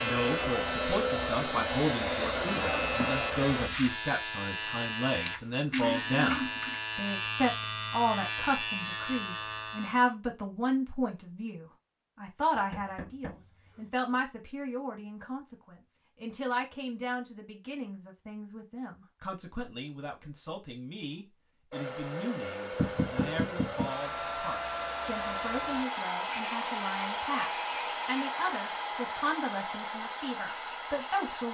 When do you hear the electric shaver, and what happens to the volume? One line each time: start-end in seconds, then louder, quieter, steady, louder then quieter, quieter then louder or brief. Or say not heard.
0.0-10.2 steady.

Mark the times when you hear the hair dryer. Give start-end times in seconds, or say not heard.
0.0-3.7, 21.7-31.4.